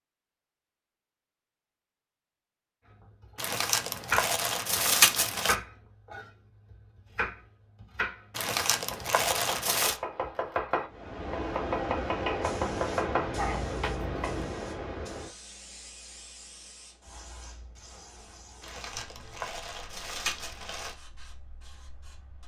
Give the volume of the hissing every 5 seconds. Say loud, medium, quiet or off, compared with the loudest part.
off, off, loud, quiet, quiet.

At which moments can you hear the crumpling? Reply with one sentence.
You can hear the crumpling from 3.4 to 5.5 s, from 8.3 to 10.0 s and from 18.6 to 20.9 s.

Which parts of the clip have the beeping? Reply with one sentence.
The beeping can't be heard in this clip.